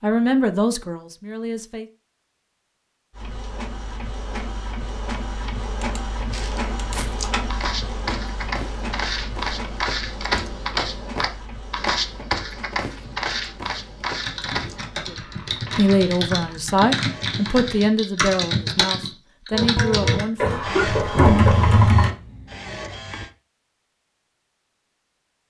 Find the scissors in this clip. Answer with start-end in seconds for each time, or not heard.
not heard.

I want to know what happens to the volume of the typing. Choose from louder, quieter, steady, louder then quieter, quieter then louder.
louder.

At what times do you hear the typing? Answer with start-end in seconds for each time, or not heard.
14.2-22.1.